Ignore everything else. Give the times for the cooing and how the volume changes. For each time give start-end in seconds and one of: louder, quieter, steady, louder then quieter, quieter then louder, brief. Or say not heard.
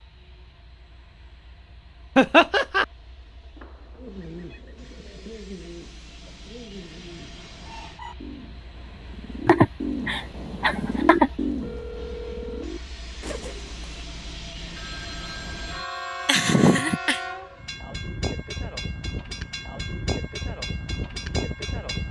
4.0-14.0 louder then quieter.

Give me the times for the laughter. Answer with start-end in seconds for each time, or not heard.
2.1-2.9, 9.4-11.3, 16.2-17.2.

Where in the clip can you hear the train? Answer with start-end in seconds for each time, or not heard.
0.0-22.0.